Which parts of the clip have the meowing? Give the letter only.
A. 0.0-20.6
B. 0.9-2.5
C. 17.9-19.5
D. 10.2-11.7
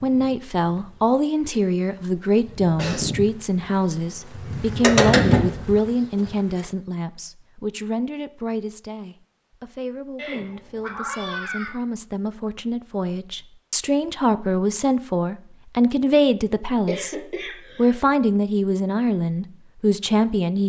D.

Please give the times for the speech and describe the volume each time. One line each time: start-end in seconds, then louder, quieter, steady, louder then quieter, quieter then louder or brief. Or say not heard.
0.0-20.6 quieter then louder.